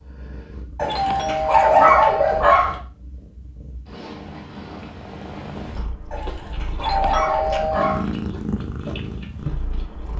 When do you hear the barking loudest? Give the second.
2 s.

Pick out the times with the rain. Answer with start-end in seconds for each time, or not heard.
not heard.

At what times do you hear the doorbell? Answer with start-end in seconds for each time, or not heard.
0.8-2.5, 6.8-8.1.